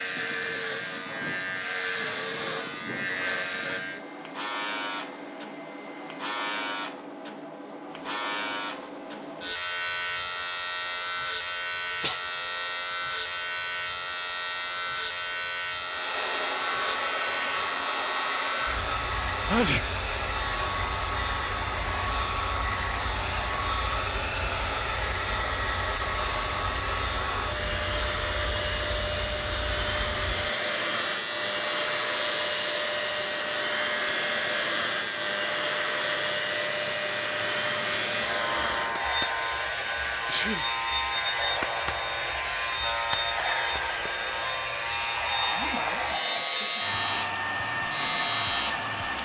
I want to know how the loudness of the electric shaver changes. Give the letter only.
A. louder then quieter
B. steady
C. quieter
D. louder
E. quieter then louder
B.